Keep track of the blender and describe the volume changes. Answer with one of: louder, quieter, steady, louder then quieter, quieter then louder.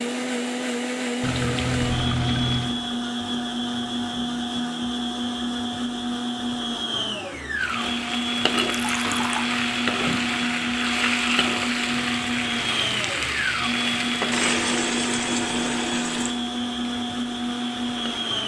steady.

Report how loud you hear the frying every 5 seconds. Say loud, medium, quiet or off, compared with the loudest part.
off, loud, loud, quiet.